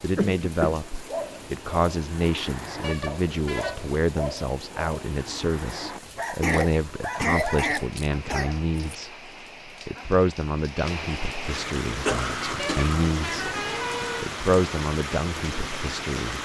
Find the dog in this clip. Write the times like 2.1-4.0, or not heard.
0.7-9.2.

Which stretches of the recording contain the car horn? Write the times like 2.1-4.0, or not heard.
2.8-3.8, 12.6-14.3.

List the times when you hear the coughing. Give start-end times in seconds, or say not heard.
0.1-0.8, 6.0-8.5, 12.1-13.7.